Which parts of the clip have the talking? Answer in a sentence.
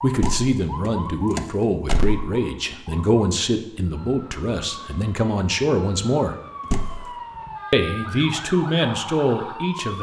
The talking can be heard from 0.0 to 6.3 s and from 7.7 to 9.9 s.